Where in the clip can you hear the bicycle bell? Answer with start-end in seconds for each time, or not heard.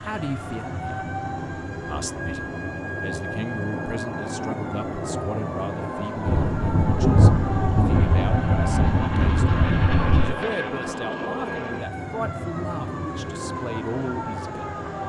not heard.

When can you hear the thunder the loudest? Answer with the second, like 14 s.
7 s.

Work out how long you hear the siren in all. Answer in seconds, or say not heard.
15 s.